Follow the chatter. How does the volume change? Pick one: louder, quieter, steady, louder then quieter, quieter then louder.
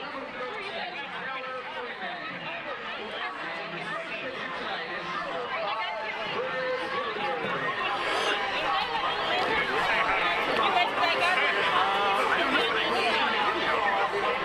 louder.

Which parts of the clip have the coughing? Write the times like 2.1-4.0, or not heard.
7.4-8.5.